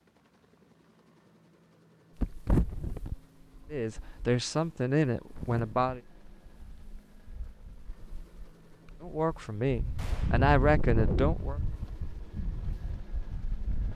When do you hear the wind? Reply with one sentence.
You can hear the wind from 2.2 to 13.9 s.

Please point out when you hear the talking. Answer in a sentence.
The talking can be heard from 3.7 to 6.0 s and from 9.0 to 11.6 s.